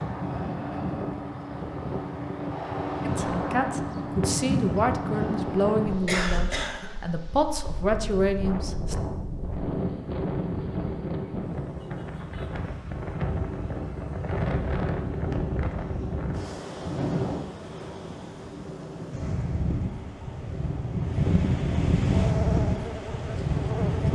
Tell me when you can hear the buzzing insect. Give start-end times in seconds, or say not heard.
22.1-24.0.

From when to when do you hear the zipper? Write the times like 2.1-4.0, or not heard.
not heard.